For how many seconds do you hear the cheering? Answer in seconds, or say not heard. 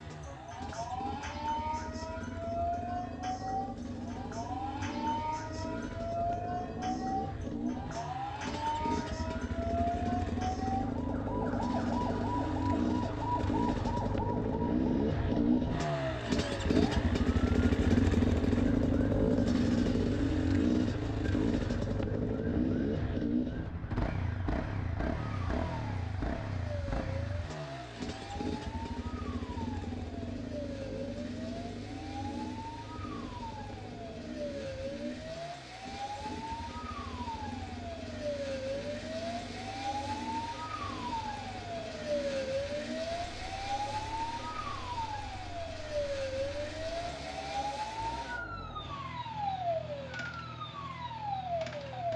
not heard.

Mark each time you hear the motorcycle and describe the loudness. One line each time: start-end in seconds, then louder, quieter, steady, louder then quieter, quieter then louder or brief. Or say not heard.
0.0-52.1 louder then quieter.